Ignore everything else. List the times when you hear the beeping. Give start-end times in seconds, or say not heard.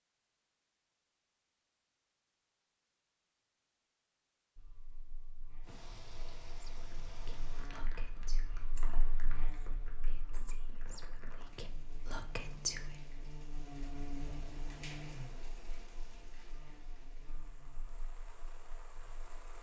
not heard.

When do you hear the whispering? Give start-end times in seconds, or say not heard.
6.6-12.8.